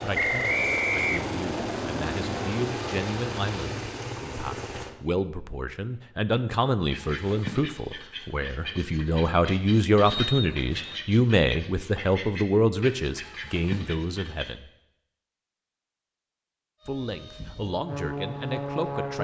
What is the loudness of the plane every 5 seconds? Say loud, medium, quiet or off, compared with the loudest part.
loud, off, off, loud.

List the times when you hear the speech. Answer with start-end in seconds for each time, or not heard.
0.0-14.7, 16.9-19.1.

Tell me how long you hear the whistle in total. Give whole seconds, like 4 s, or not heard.
2 s.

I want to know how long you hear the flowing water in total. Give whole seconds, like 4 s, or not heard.
not heard.